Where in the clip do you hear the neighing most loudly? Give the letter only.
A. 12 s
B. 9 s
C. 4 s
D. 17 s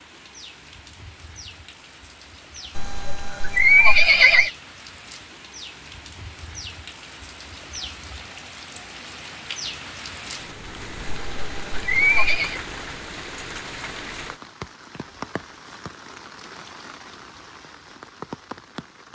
C.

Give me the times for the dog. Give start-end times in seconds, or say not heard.
not heard.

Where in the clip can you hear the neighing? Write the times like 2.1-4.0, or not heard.
2.8-4.5, 11.1-12.6.